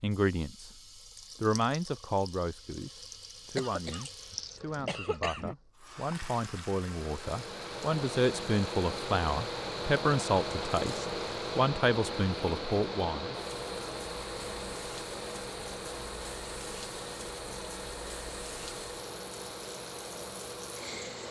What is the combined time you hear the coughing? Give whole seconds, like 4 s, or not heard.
2 s.